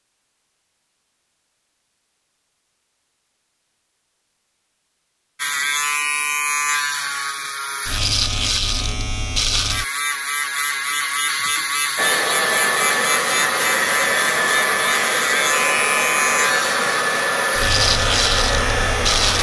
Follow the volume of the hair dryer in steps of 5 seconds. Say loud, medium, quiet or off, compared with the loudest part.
off, off, loud, loud.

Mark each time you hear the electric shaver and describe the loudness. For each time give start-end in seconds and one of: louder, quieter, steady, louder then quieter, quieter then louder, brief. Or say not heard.
5.3-19.3 steady.